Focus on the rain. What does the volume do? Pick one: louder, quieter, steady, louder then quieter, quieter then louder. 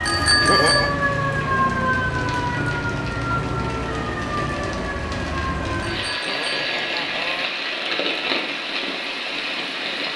steady.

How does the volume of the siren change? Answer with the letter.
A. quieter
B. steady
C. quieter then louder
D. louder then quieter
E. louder
A.